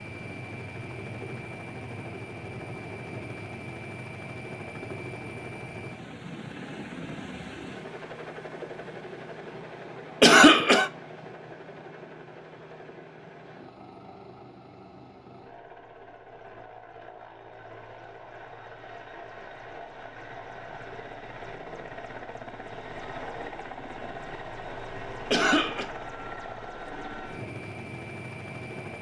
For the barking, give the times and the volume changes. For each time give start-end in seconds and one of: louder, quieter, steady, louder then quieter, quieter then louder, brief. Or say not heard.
not heard.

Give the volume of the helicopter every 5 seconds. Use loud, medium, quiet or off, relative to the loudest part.
loud, loud, medium, medium, loud, loud.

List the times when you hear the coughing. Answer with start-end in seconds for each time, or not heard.
10.2-10.9, 25.3-25.9.